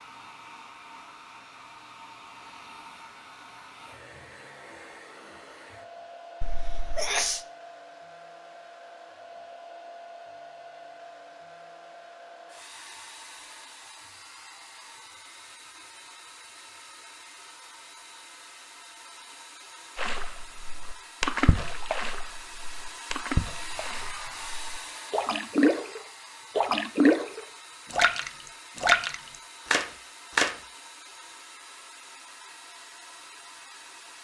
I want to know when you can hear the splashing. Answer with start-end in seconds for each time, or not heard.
19.9-30.6.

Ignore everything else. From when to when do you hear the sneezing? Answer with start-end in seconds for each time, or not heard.
6.4-7.5.